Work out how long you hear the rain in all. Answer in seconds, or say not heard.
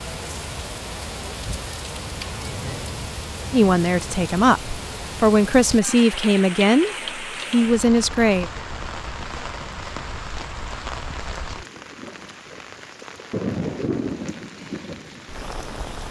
16 s.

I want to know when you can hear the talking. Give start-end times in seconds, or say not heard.
3.5-8.5.